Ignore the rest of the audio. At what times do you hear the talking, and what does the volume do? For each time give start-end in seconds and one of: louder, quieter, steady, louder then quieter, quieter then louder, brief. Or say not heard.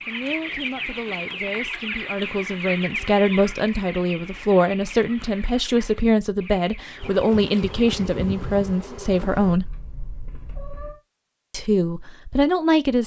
0.1-9.7 louder
11.5-13.0 brief.